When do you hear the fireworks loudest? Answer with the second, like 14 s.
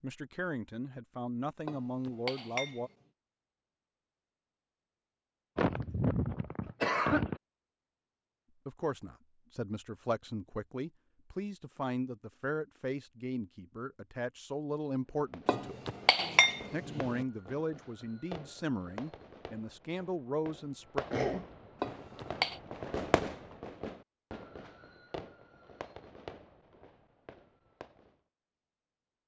23 s.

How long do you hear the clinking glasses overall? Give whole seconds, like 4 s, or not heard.
4 s.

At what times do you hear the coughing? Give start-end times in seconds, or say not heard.
5.5-7.4, 20.9-21.4.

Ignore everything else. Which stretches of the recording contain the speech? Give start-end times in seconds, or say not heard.
0.0-2.9, 8.7-15.8, 16.7-21.1.